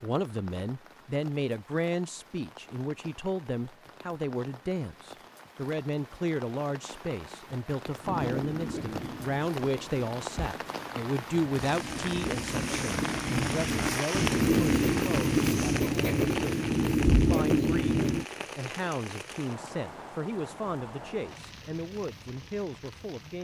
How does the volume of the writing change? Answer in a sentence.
The loudness of the writing goes up.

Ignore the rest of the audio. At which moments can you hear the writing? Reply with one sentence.
The writing can be heard from 8.0 to 18.2 s.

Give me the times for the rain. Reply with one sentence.
The rain can be heard from 0.0 to 23.4 s.